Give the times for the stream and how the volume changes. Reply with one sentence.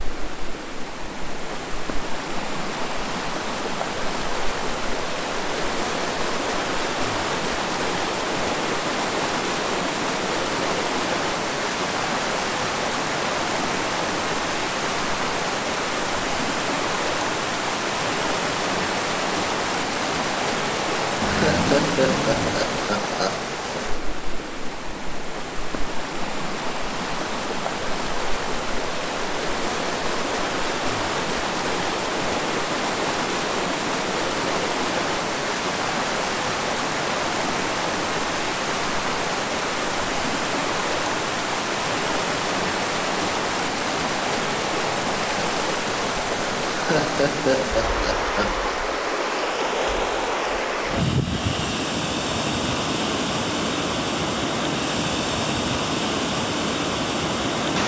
You can hear the stream from 0.0 to 57.8 s, at a steady volume.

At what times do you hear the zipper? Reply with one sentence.
The zipper can be heard from 21.2 to 22.7 s.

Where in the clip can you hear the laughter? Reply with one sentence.
You can hear the laughter from 21.2 to 23.4 s and from 46.7 to 48.6 s.